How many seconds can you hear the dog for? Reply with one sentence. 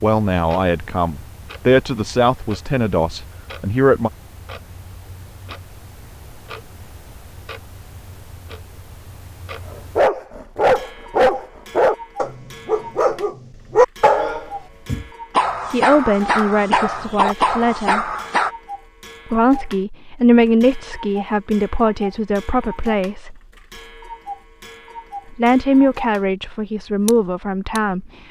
You can hear the dog for 9 seconds altogether.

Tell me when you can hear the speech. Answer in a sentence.
You can hear the speech from 0.0 to 4.1 s, from 15.7 to 18.1 s, from 19.3 to 23.4 s and from 25.3 to 28.1 s.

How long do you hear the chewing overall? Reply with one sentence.
You can't hear the chewing here.